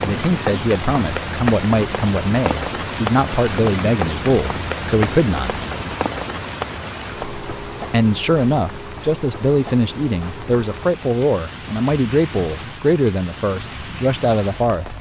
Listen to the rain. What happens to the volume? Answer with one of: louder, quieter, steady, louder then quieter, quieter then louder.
quieter.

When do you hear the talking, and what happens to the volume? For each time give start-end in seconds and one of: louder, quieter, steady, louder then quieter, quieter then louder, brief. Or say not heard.
0.0-5.7 steady
7.9-14.9 steady.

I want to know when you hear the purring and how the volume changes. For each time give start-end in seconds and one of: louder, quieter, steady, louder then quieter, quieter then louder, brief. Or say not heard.
not heard.